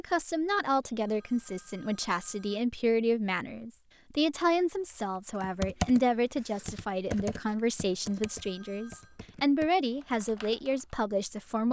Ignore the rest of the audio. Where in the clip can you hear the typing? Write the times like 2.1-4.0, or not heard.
5.4-10.9.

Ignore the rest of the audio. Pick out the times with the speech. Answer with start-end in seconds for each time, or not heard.
0.0-11.6.